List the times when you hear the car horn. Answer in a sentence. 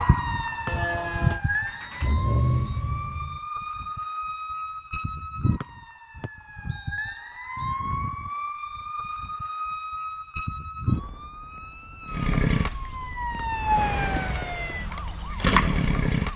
You can hear the car horn from 0.7 to 1.4 s.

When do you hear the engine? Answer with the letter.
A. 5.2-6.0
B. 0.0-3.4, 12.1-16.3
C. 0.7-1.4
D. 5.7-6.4
B.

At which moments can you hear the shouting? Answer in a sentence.
The shouting can't be heard in this clip.